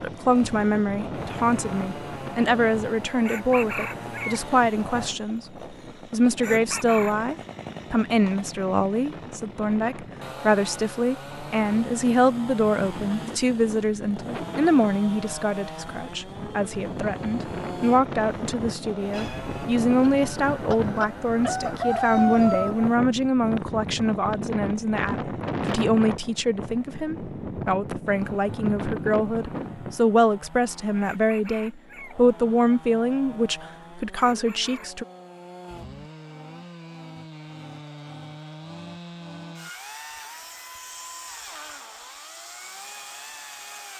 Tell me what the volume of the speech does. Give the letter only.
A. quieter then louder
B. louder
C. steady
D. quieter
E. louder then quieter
C.